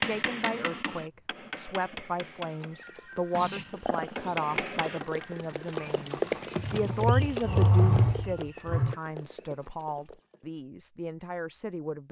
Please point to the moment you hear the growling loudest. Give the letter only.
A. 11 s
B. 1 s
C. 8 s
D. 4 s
C.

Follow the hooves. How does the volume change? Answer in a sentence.
The volume of the hooves goes up, then down.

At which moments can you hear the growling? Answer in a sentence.
The growling can be heard from 3.4 to 4.1 s and from 6.5 to 8.9 s.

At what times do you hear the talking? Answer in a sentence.
You can hear the talking from 0.0 to 12.0 s.